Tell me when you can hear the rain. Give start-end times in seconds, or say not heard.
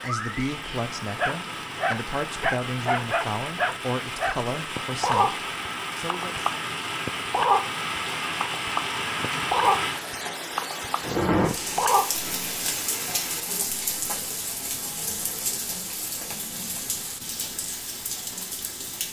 0.0-19.0.